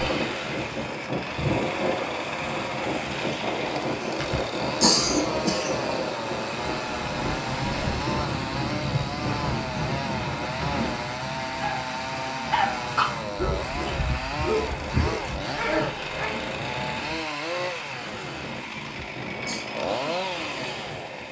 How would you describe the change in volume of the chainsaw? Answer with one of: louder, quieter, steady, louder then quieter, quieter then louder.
steady.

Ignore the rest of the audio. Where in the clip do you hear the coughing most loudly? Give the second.
5 s.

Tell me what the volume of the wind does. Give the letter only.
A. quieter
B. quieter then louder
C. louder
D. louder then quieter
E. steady
A.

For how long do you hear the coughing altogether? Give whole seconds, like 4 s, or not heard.
3 s.